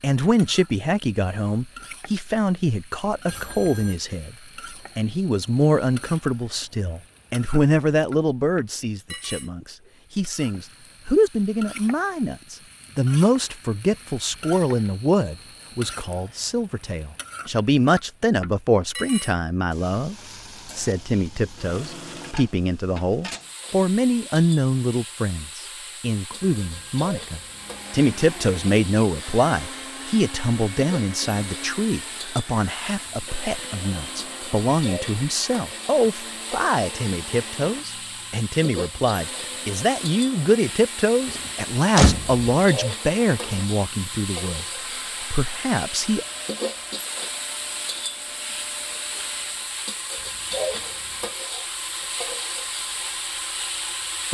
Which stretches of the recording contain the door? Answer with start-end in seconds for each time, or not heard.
41.3-42.5.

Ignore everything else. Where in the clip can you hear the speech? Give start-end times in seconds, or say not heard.
0.0-4.3, 5.0-20.1, 20.8-46.2.